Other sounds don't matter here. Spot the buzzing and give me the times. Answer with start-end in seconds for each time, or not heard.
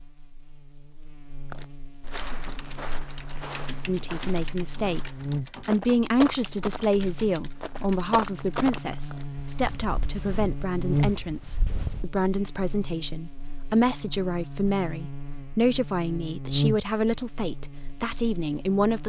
0.0-19.0.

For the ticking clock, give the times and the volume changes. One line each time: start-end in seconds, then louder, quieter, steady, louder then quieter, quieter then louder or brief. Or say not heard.
not heard.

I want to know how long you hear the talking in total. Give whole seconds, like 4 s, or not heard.
15 s.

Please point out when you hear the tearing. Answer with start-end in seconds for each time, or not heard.
not heard.